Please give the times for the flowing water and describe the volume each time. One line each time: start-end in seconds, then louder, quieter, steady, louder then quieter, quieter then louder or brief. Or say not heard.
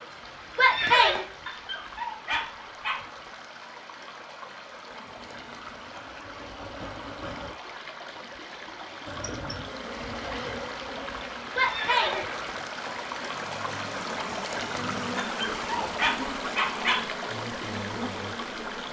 0.0-18.8 louder.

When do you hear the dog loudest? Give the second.
17 s.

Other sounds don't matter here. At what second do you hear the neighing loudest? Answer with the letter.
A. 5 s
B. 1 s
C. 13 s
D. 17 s
B.